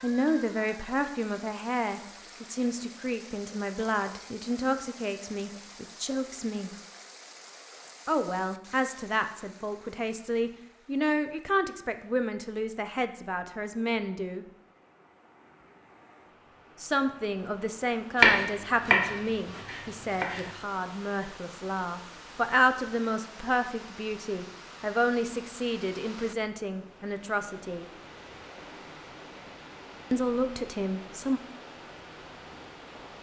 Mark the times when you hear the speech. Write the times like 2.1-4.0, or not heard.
0.0-6.7, 8.1-14.4, 16.8-27.9, 30.1-31.4.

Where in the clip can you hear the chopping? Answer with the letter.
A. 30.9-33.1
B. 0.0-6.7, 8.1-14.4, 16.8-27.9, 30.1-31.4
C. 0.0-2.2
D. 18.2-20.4
D.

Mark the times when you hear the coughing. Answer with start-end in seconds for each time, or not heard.
not heard.